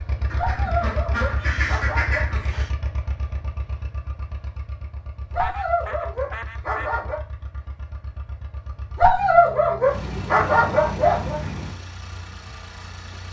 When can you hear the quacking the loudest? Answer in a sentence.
The volume of the quacking peaks at 2 seconds.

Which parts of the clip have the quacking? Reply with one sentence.
The quacking can be heard from 0.3 to 2.7 s, from 5.3 to 7.0 s and from 9.9 to 11.8 s.